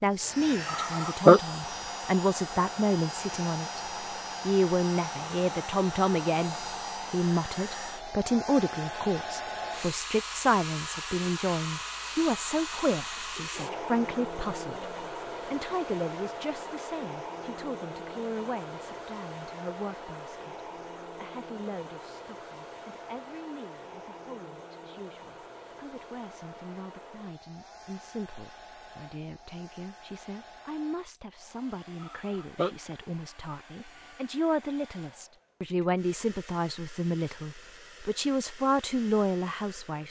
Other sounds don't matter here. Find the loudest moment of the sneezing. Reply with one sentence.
The volume of the sneezing peaks at 1 second.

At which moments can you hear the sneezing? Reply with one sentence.
The sneezing can be heard from 0.7 to 1.4 s and from 32.0 to 32.8 s.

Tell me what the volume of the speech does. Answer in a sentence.
The volume of the speech goes down, then up.